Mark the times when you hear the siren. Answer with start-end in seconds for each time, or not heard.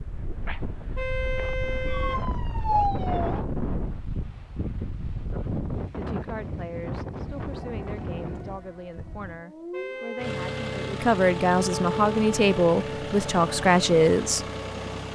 1.9-3.4, 7.2-14.9.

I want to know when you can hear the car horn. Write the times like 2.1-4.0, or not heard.
0.9-2.9, 9.7-11.0.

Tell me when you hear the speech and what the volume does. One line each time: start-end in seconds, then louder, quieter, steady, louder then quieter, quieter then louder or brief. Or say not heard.
6.0-14.4 louder.